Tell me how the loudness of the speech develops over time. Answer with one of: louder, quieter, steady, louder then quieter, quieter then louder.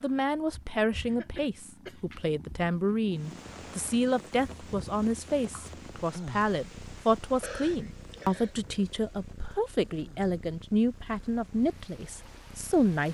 steady.